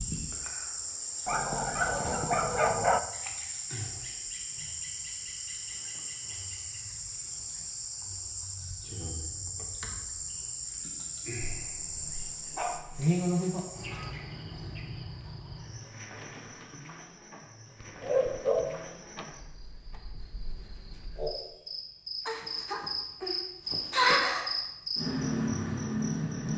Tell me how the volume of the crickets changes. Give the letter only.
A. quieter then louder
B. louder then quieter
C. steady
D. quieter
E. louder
A.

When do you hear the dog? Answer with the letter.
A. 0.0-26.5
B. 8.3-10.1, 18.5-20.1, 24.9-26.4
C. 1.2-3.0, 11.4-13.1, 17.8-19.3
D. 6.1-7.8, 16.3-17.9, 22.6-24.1
C.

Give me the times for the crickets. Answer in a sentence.
The crickets can be heard from 0.0 to 26.5 s.